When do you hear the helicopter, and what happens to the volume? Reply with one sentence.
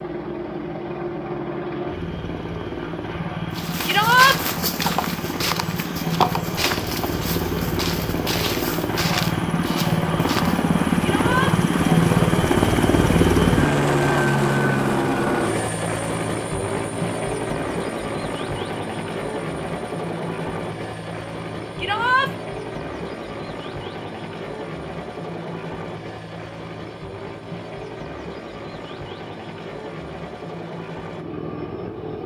The helicopter can be heard from 0.0 to 32.2 s, getting louder then quieter.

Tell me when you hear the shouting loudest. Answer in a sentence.
The loudest moment of the shouting is at 4 seconds.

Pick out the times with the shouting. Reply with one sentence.
You can hear the shouting from 3.9 to 4.3 s, from 11.0 to 11.6 s and from 21.8 to 22.3 s.